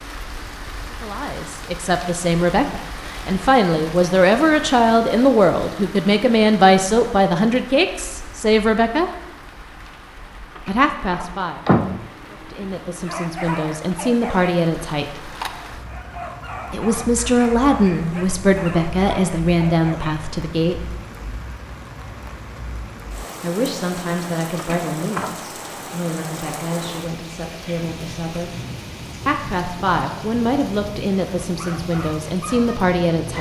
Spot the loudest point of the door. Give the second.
12 s.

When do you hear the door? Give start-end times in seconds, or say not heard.
10.6-12.1, 24.6-25.4.